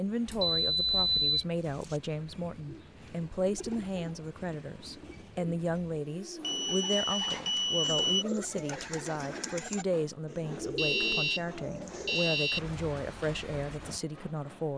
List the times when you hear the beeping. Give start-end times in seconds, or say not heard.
0.3-2.0, 6.4-8.2, 10.6-11.4, 12.1-12.6.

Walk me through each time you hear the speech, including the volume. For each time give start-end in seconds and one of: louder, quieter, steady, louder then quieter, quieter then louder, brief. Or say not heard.
0.0-14.7 steady.